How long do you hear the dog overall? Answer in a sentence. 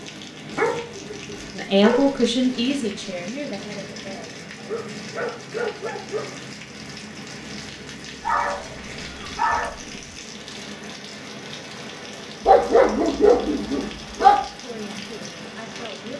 The dog can be heard for 7 seconds in total.